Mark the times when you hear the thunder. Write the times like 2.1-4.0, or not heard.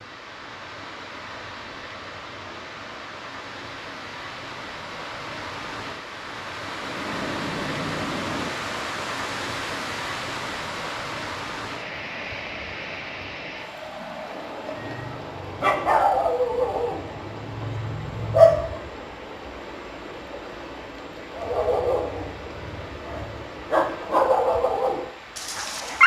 6.8-8.5.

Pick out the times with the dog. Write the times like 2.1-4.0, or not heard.
14.8-18.8, 21.4-26.0.